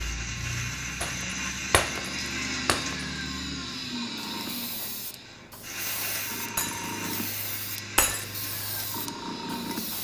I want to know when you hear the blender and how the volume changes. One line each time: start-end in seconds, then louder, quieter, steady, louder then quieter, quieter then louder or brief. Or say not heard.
0.0-9.9 quieter.